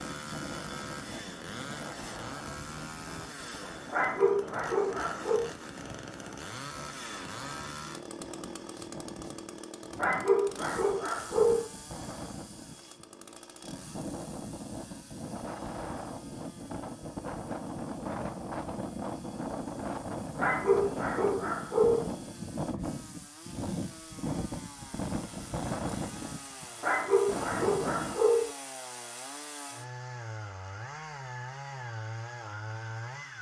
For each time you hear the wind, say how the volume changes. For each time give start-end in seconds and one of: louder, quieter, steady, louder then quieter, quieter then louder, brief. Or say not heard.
0.0-28.2 louder.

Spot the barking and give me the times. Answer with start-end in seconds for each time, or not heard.
3.9-5.5, 9.9-11.7, 20.4-22.1, 26.8-28.5.